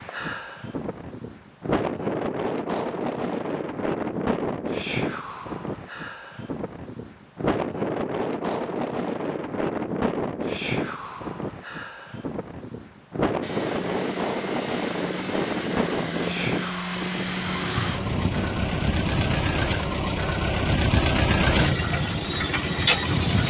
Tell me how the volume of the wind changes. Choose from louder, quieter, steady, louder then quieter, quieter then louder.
steady.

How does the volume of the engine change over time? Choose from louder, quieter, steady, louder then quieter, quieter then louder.
louder.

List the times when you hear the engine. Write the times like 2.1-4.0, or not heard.
13.4-23.4.